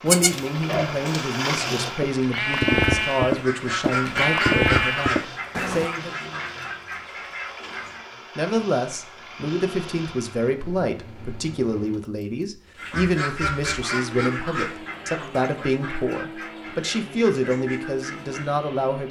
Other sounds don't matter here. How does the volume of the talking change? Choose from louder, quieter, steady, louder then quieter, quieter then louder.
steady.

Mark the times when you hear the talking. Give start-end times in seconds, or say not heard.
0.0-6.1, 8.3-19.0.